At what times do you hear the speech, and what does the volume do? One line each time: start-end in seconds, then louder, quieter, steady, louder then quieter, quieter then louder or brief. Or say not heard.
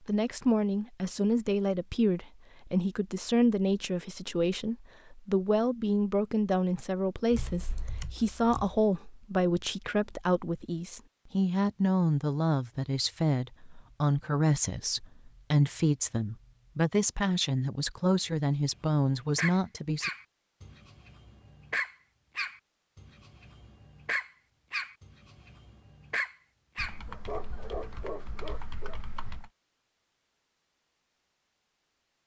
0.1-20.1 steady.